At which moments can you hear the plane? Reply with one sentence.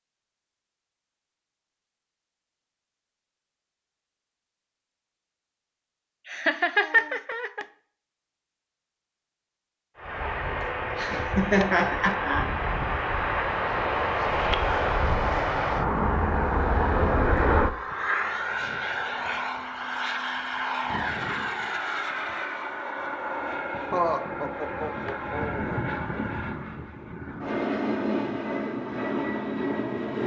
You can hear the plane from 9.9 to 30.2 s.